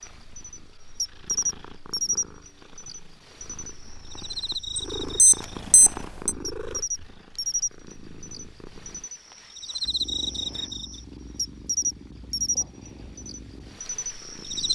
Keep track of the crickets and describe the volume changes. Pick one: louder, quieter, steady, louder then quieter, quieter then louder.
quieter then louder.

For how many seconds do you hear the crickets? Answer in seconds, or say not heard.
15 s.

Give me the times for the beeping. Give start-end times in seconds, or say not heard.
4.8-6.3.